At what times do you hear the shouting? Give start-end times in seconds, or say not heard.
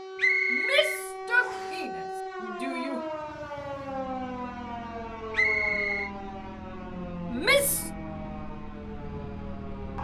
0.5-3.0, 7.3-7.9.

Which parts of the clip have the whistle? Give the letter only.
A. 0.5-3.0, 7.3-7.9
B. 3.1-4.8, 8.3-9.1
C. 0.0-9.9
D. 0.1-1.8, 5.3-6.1
D.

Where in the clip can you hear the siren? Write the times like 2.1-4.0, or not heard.
0.0-9.9.